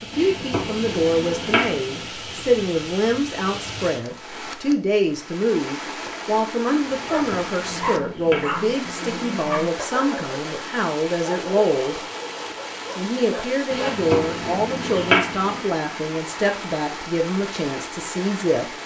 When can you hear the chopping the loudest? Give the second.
15 s.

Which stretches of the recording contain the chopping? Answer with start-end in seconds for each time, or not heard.
0.1-2.0, 7.1-8.6, 13.7-15.7.